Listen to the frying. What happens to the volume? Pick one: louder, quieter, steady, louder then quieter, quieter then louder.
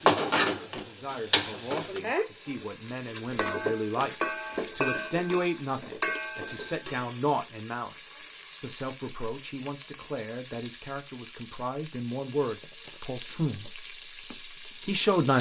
quieter.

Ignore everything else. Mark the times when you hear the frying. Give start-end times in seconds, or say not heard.
0.0-15.3.